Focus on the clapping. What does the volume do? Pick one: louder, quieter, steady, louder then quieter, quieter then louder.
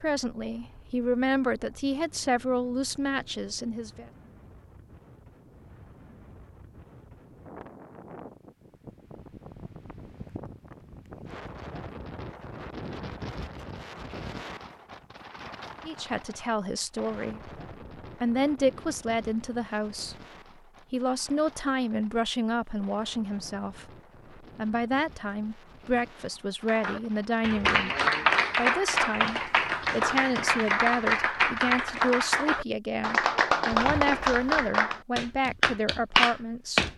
steady.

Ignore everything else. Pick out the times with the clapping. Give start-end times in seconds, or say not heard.
26.6-36.9.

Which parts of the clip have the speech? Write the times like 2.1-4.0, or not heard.
0.0-4.1, 15.8-17.5, 18.2-20.1, 20.9-27.9, 28.6-36.9.